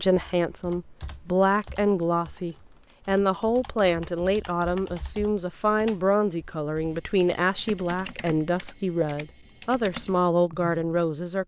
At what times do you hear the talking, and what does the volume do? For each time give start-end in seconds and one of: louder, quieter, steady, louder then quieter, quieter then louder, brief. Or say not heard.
0.0-11.4 steady.